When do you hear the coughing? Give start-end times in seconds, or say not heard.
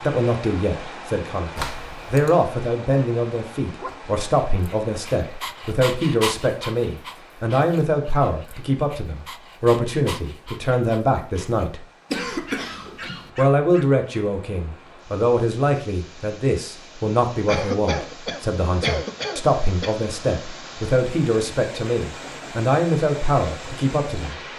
1.6-2.4, 12.1-13.3, 17.4-19.9.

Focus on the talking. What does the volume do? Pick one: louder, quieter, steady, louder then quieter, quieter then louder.
steady.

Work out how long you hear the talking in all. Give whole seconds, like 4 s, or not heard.
23 s.